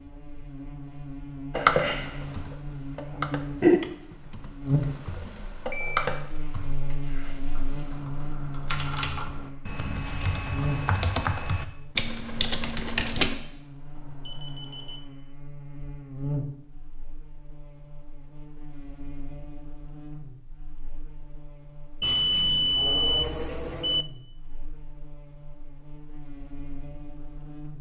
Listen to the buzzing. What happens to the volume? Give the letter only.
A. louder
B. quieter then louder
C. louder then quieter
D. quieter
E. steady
D.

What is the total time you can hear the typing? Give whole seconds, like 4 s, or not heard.
12 s.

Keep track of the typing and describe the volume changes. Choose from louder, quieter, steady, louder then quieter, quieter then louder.
quieter then louder.